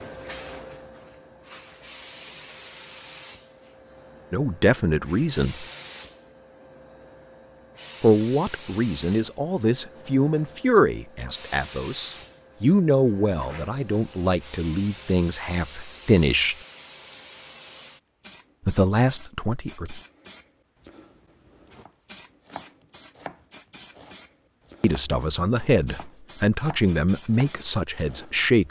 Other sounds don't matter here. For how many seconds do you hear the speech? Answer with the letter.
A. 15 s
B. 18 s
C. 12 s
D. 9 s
A.